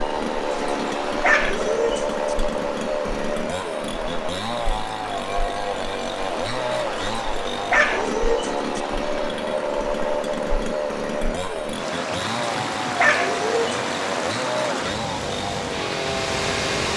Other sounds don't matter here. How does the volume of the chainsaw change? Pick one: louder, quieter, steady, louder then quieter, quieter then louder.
steady.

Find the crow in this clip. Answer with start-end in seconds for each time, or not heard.
not heard.